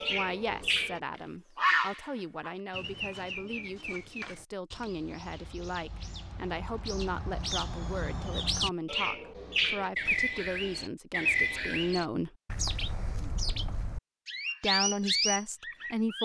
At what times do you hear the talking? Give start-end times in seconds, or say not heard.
0.1-12.3, 14.6-16.2.